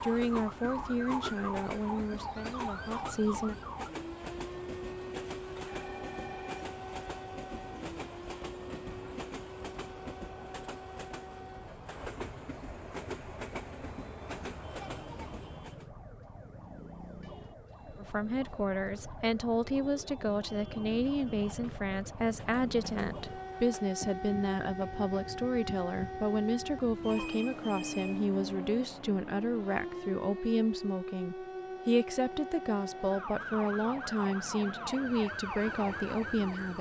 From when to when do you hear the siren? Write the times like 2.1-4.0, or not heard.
0.0-36.7.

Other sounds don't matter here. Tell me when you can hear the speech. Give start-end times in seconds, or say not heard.
0.0-3.5, 17.9-36.7.